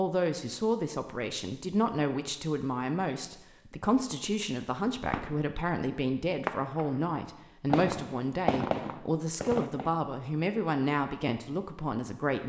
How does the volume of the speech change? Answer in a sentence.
The loudness of the speech stays about the same.